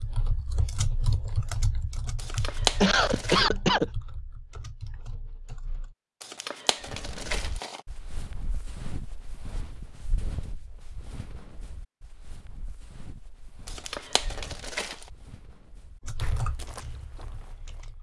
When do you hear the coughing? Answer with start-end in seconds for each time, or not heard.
2.8-3.9.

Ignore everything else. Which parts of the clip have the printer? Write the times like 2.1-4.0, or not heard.
not heard.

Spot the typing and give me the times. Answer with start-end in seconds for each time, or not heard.
0.0-6.0, 16.0-17.9.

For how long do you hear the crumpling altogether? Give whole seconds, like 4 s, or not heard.
4 s.